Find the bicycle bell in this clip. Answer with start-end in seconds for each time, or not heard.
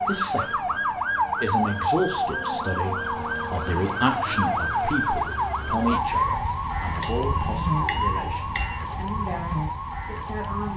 7.0-8.8.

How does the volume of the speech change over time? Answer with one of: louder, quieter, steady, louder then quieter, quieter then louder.
quieter.